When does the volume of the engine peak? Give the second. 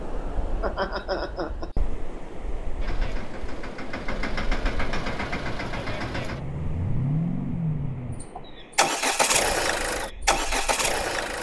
9 s.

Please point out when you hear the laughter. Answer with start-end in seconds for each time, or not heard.
0.6-1.8.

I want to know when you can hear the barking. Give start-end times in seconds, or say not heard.
not heard.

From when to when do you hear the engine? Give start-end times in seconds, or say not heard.
2.8-11.3.